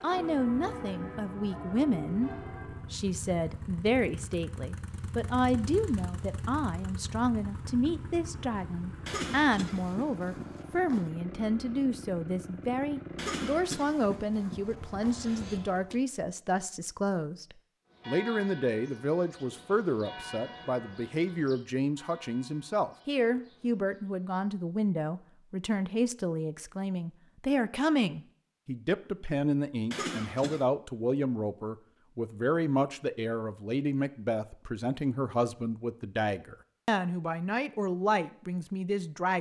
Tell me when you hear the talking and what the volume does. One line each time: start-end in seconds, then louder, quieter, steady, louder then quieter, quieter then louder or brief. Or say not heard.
0.0-39.3 steady.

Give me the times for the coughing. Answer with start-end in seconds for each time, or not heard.
9.1-11.1, 13.2-15.9, 29.9-30.6.